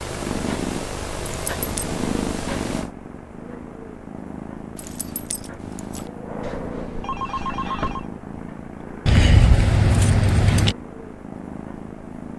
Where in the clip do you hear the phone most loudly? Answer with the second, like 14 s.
8 s.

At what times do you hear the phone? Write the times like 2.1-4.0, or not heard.
6.4-8.1.